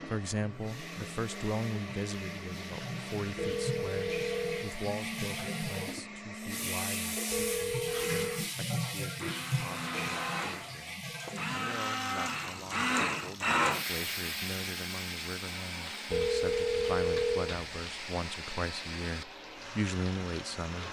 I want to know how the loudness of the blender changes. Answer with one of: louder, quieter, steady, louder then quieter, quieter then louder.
louder then quieter.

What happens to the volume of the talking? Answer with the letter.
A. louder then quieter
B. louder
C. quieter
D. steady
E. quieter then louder
E.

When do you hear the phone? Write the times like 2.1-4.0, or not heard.
3.4-4.8, 7.3-8.4, 16.1-17.6.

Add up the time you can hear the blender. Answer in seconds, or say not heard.
21 s.